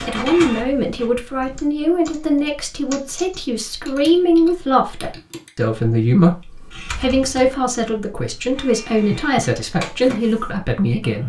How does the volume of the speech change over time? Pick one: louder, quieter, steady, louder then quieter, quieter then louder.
steady.